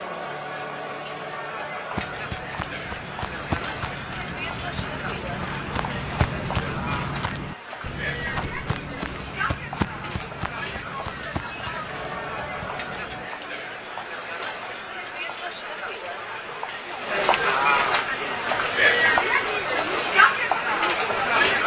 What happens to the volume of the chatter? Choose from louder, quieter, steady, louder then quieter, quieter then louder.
louder.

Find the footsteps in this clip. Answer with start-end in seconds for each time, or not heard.
1.9-13.3.